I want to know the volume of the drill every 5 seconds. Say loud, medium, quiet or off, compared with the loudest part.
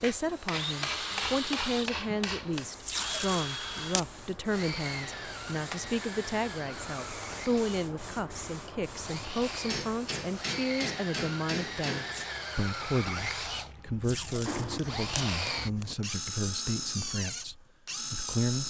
loud, medium, loud, loud.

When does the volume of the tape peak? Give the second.
3 s.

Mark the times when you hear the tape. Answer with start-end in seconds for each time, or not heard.
2.8-4.0, 14.0-15.2.